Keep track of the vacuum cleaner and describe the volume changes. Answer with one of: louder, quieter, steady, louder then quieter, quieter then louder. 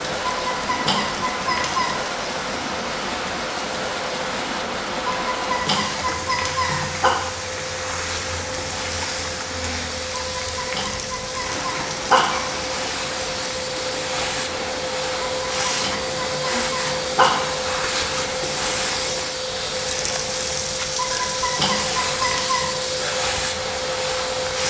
louder.